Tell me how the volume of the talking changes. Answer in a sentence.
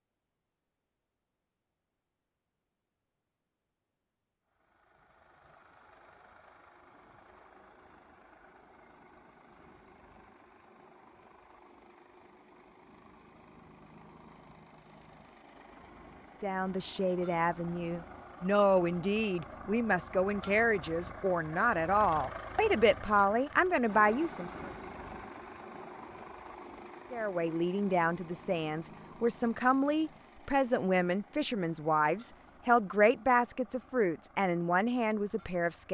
The volume of the talking stays about the same.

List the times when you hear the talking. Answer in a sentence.
The talking can be heard from 16.4 to 24.7 s and from 27.1 to 35.8 s.